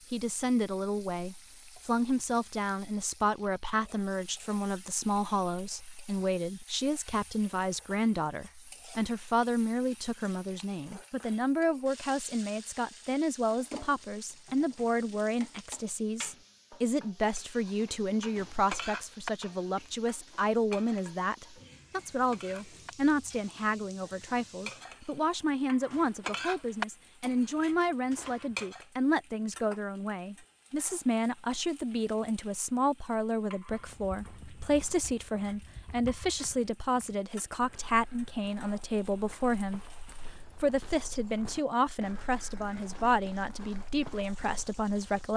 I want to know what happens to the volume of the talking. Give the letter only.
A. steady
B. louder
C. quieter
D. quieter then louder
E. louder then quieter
A.